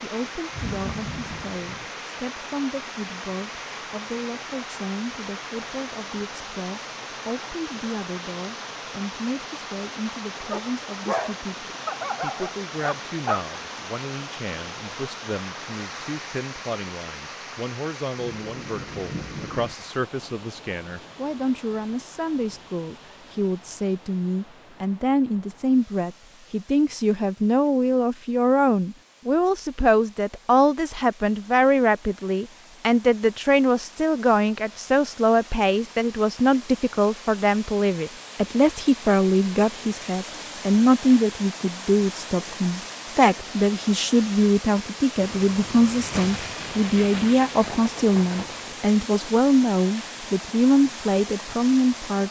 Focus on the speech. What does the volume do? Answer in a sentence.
The volume of the speech goes up.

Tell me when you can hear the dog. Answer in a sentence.
The dog can be heard from 10.5 to 13.4 s.